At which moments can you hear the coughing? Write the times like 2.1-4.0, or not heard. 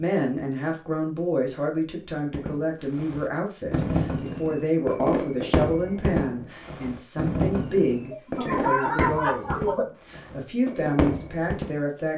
8.1-9.8.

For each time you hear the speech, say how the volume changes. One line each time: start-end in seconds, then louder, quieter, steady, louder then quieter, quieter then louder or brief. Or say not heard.
0.0-12.1 steady.